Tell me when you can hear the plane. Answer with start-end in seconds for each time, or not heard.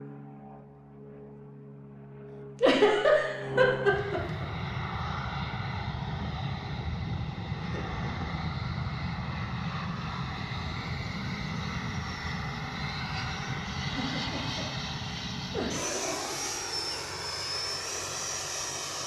0.0-19.0.